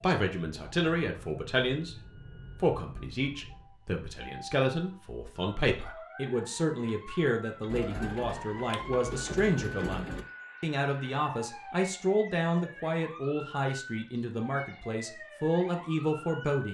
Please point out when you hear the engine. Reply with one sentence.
You can hear the engine from 7.7 to 10.2 s.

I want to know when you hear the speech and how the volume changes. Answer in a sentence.
You can hear the speech from 0.0 to 16.7 s, at a steady volume.